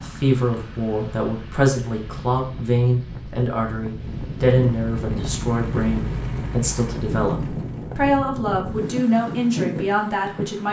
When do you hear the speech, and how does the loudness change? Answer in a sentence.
The speech can be heard from 0.0 to 10.6 s, at a steady volume.